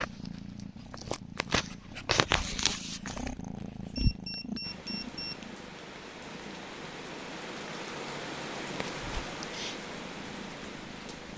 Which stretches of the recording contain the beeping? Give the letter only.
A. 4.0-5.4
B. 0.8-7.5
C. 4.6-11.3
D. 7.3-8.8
A.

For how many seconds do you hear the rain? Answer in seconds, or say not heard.
7 s.